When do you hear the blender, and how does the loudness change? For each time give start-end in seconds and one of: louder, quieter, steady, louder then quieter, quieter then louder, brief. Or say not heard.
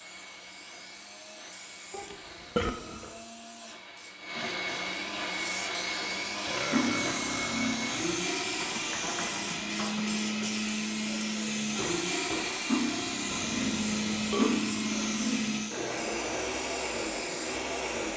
0.0-18.1 louder.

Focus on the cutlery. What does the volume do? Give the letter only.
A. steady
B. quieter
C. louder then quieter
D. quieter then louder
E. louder
D.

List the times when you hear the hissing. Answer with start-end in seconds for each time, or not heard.
0.0-18.1.